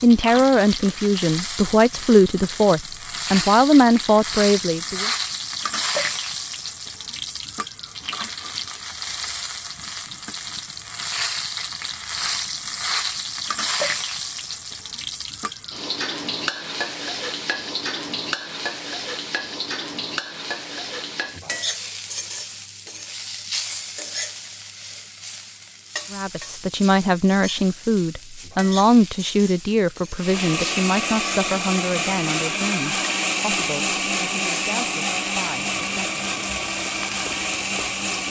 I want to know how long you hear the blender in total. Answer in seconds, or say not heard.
8 s.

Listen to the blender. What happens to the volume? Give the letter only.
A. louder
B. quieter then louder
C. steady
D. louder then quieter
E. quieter
C.